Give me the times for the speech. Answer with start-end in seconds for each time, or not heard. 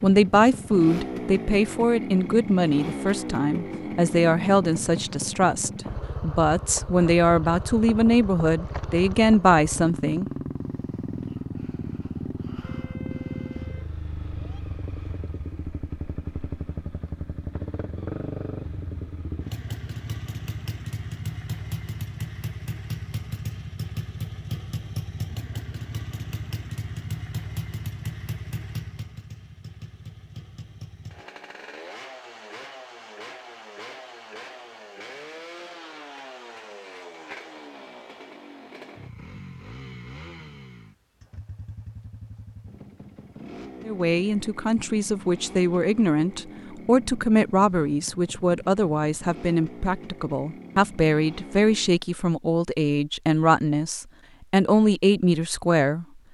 0.0-10.2, 43.9-56.0.